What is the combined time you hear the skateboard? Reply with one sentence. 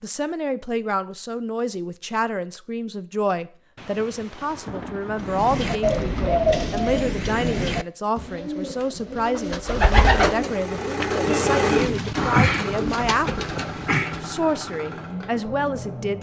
You can't hear the skateboard here.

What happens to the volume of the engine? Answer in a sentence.
The volume of the engine goes down.